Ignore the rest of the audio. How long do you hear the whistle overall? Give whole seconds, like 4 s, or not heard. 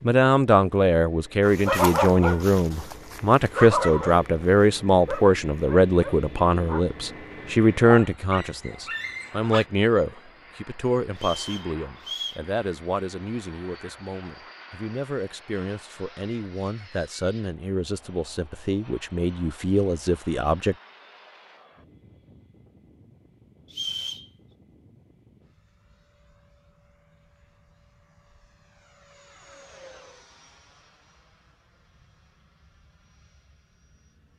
2 s.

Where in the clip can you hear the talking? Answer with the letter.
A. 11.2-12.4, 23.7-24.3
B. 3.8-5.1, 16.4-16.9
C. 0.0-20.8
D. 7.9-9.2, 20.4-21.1
C.